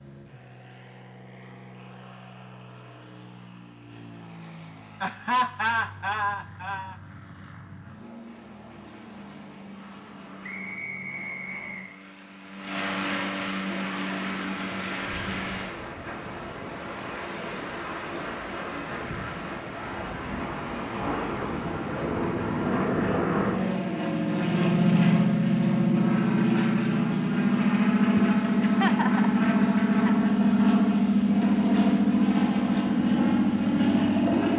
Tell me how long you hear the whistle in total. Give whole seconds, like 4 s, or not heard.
2 s.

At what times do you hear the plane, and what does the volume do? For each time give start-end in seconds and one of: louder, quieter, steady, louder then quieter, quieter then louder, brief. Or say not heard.
0.0-34.5 louder.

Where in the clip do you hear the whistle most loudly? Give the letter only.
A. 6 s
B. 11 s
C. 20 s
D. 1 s
B.